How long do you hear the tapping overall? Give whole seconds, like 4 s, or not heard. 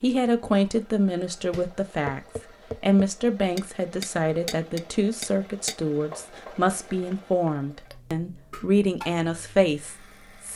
8 s.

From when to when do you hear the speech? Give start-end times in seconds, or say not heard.
0.0-2.2, 2.8-10.5.